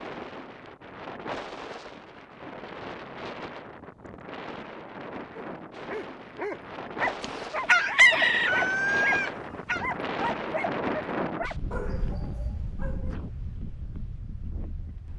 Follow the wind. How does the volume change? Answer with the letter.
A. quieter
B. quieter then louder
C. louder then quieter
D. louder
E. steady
C.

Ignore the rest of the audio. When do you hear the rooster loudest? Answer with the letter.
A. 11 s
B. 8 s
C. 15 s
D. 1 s
B.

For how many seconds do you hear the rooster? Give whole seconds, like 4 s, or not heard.
3 s.